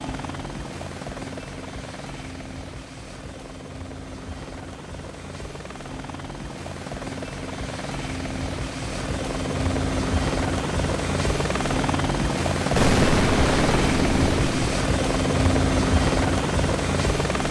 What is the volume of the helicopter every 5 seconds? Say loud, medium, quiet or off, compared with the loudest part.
quiet, medium, loud, loud.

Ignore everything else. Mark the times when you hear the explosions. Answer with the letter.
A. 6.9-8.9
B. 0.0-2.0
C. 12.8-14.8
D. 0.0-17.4
C.